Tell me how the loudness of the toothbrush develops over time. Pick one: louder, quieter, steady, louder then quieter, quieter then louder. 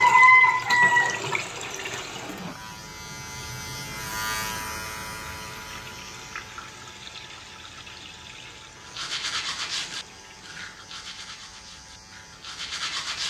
quieter then louder.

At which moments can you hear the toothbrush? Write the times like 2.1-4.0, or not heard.
8.8-13.2.